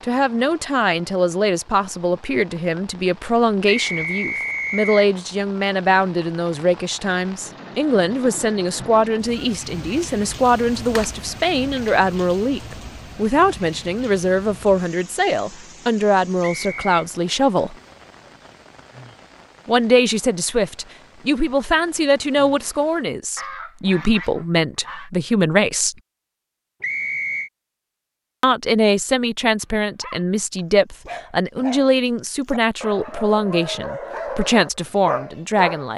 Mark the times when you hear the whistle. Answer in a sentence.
The whistle can be heard from 3.6 to 5.1 s, from 16.4 to 17.1 s and from 26.8 to 27.5 s.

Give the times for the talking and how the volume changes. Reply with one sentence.
The talking can be heard from 0.0 to 17.8 s, at a steady volume; from 19.6 to 25.9 s, at a steady volume; and from 28.4 to 35.9 s, at a steady volume.